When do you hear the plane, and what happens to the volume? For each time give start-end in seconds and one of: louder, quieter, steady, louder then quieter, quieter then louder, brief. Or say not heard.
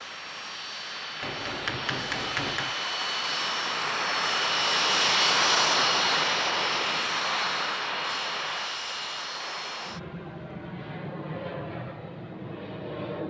0.0-13.2 louder then quieter.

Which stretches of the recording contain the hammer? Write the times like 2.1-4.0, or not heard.
1.2-2.8.